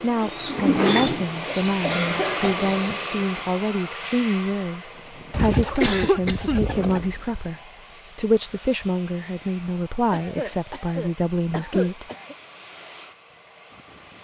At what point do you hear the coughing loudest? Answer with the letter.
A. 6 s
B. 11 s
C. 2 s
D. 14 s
A.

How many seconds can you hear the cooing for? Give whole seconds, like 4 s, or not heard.
5 s.